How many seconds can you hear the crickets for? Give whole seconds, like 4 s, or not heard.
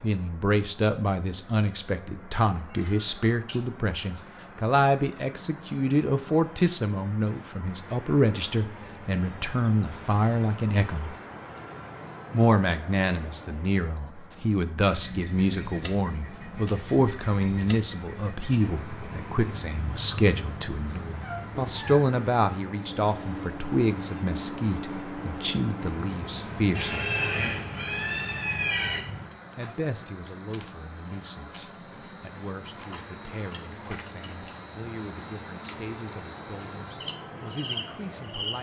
30 s.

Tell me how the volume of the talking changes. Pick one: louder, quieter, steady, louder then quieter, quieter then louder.
quieter.